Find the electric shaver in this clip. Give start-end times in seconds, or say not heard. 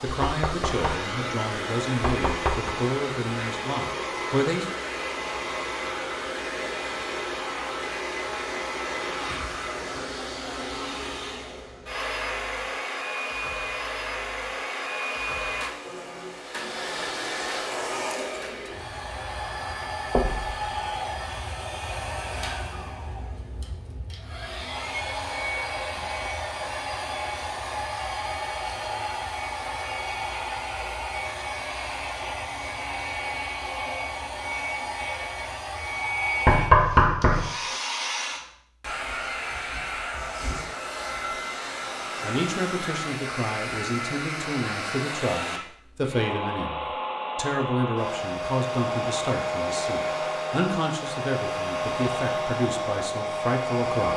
not heard.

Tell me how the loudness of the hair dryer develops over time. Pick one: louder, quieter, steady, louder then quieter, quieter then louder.
steady.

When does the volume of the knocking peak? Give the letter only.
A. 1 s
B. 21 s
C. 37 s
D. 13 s
C.